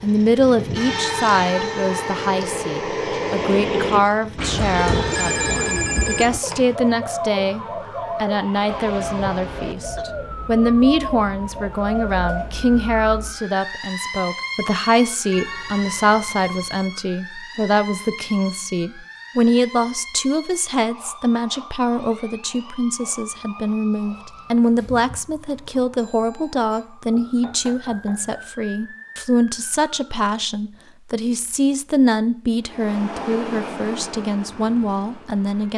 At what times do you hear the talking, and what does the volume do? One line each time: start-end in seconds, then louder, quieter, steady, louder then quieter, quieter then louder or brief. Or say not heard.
0.0-35.7 steady.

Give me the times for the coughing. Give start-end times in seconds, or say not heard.
8.7-10.1.